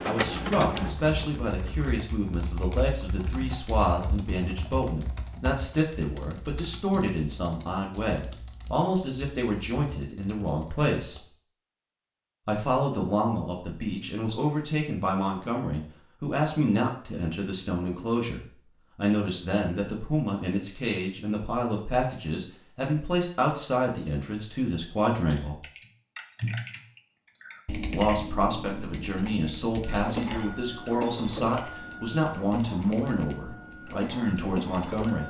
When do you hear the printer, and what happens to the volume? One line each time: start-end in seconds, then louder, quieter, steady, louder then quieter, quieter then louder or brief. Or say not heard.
0.0-1.9 brief
29.9-35.2 quieter then louder.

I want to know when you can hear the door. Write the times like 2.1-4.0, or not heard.
not heard.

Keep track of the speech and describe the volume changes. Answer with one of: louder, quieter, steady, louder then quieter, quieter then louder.
steady.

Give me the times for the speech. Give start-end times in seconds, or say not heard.
0.0-11.2, 12.4-25.6, 27.9-35.2.